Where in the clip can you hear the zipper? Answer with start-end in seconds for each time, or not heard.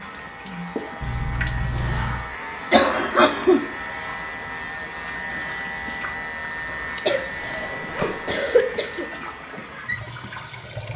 1.0-2.2, 7.5-8.4.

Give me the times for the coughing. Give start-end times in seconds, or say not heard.
2.7-3.6, 6.8-9.1.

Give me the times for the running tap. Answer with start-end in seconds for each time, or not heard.
0.0-10.9.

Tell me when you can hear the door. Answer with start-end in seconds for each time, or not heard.
not heard.